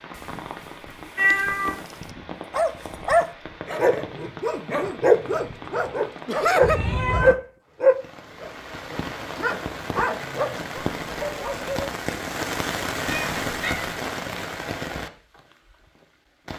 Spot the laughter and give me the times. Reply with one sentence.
You can hear the laughter from 6.2 to 6.8 s.